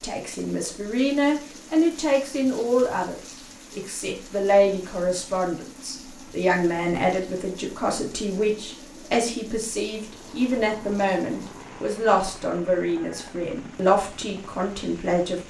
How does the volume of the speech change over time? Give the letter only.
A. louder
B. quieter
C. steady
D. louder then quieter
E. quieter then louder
C.